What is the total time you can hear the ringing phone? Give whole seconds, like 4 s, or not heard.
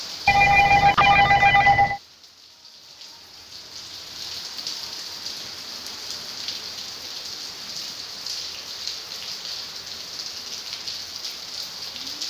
2 s.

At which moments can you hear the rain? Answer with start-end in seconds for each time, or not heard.
0.0-12.2.